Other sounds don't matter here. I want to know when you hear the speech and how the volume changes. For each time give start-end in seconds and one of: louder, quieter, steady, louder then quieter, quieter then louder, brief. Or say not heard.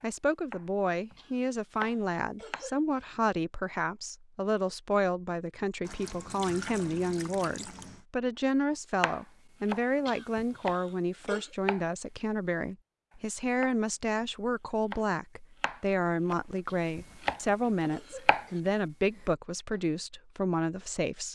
0.0-21.2 steady.